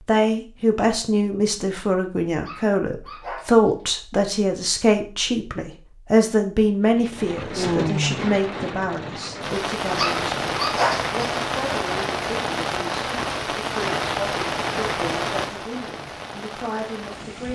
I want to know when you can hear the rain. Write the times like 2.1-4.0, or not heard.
6.9-17.5.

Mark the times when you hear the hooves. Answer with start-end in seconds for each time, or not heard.
not heard.